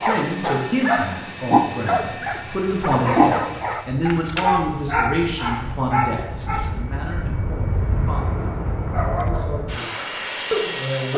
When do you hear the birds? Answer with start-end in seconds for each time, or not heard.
not heard.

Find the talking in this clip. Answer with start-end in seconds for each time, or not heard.
0.0-8.4, 9.1-9.9, 10.7-11.1.